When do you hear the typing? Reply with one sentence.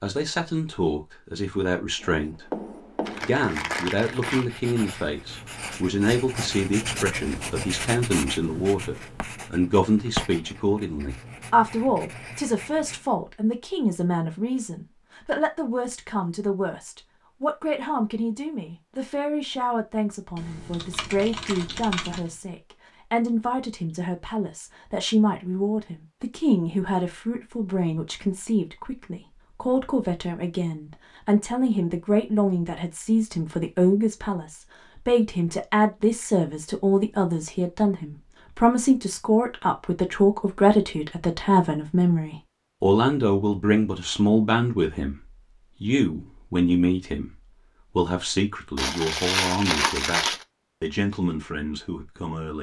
You can hear the typing from 20.4 to 22.4 s.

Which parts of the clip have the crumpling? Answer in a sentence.
The crumpling can be heard from 3.0 to 4.5 s and from 48.8 to 50.5 s.